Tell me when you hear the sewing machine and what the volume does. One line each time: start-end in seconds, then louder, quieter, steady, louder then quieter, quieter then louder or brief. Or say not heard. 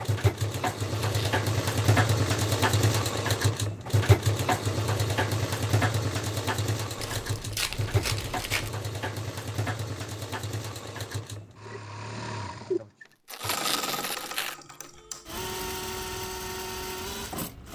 0.0-17.7 quieter.